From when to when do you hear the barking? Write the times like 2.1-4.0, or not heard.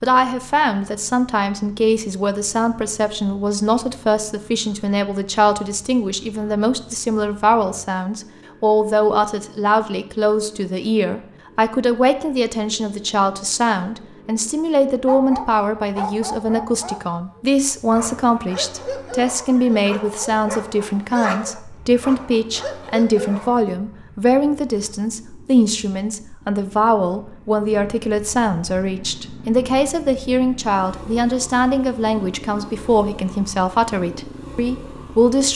15.1-23.6.